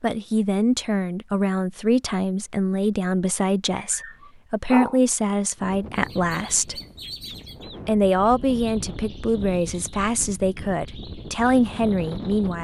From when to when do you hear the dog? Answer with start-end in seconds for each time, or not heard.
3.8-5.0.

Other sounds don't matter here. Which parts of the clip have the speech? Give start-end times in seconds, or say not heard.
0.0-6.8, 7.8-12.5.